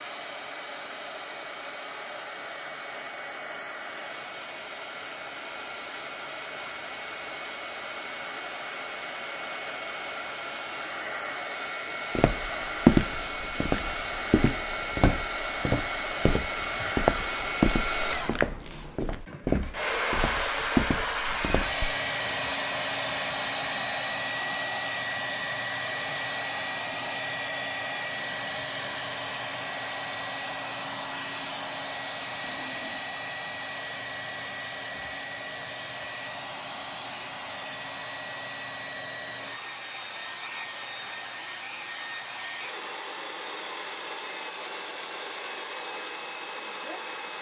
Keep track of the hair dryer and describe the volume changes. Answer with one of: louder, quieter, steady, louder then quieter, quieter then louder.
louder then quieter.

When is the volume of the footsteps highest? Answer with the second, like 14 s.
13 s.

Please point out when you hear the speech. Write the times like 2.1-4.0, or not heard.
not heard.